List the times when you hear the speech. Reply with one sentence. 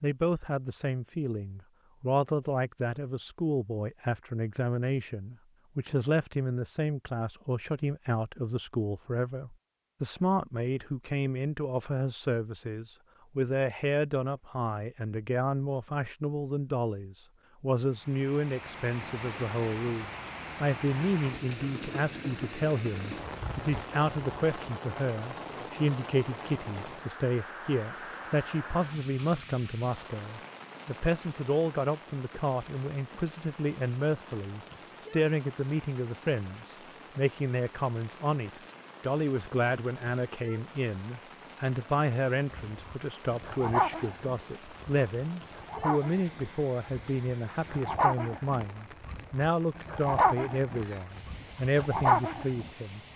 You can hear the speech from 0.0 to 53.0 s.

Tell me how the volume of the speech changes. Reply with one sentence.
The loudness of the speech stays about the same.